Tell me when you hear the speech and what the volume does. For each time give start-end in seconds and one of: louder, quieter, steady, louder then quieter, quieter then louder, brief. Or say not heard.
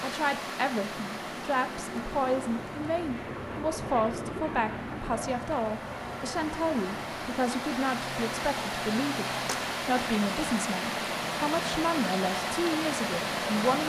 0.0-13.8 steady.